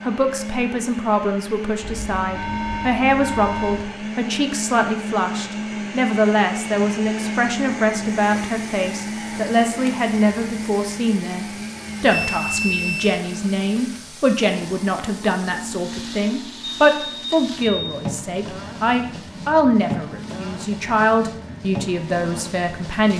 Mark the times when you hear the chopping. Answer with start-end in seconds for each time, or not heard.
not heard.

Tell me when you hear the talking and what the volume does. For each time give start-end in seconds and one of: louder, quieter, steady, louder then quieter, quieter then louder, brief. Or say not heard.
0.0-23.1 steady.